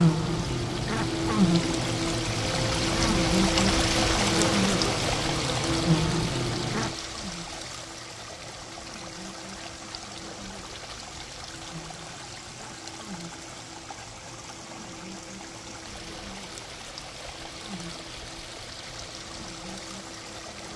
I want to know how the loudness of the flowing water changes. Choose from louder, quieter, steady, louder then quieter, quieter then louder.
quieter.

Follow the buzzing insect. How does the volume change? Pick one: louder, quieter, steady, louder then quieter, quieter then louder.
quieter.